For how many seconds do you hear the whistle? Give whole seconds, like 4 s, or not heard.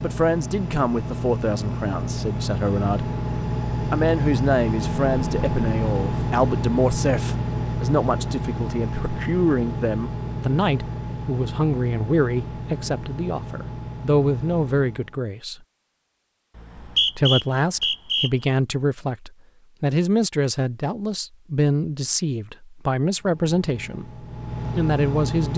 2 s.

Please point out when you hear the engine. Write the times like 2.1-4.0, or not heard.
0.0-15.2, 23.1-25.5.